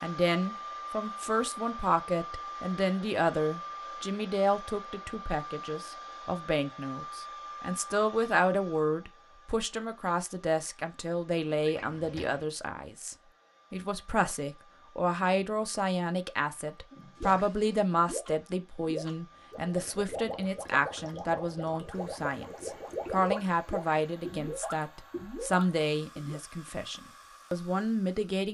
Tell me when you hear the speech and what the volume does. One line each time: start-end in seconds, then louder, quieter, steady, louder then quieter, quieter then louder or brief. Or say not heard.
0.0-28.4 steady.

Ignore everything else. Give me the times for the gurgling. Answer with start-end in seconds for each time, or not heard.
17.1-26.4.